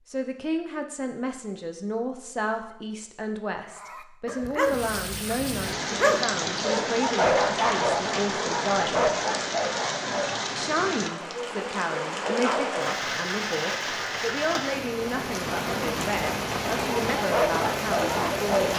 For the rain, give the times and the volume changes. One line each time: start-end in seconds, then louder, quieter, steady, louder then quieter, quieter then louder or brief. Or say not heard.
4.6-18.7 steady.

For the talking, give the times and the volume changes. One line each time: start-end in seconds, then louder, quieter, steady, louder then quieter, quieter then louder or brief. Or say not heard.
0.1-9.1 steady
10.6-18.7 steady.